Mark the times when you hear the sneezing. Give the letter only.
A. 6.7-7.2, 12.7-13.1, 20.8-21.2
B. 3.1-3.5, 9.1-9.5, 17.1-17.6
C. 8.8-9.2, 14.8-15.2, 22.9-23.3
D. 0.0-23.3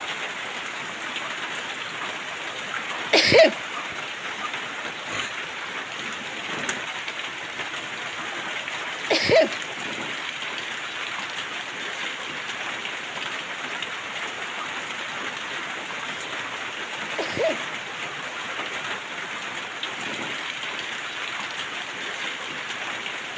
B.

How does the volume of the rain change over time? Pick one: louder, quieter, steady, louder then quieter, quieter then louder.
steady.